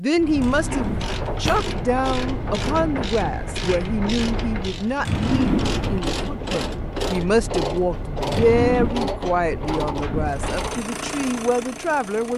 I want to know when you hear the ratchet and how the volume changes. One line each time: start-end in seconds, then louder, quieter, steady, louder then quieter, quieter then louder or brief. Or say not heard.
0.1-10.9 steady.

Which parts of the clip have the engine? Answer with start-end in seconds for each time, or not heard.
10.2-12.3.